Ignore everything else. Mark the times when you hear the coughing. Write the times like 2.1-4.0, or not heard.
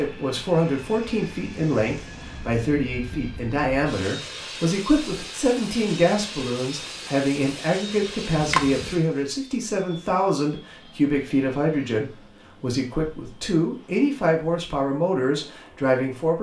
8.3-9.1.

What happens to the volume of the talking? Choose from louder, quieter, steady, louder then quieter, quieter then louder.
steady.